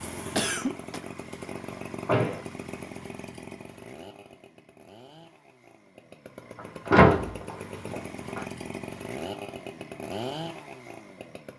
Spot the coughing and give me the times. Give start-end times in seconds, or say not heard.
0.3-1.0.